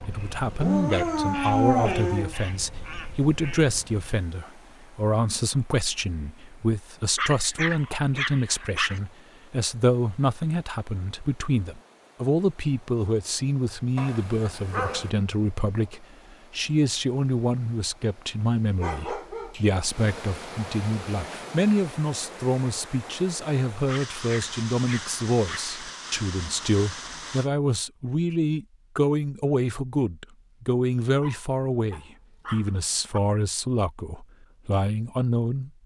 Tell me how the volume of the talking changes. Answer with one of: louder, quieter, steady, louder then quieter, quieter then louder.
steady.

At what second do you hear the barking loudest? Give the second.
2 s.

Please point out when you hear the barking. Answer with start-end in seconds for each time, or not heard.
0.6-2.4, 7.2-9.0, 13.9-15.1, 18.8-19.8, 23.9-25.7, 31.2-33.2.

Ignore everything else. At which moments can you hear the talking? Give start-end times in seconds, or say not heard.
0.1-35.7.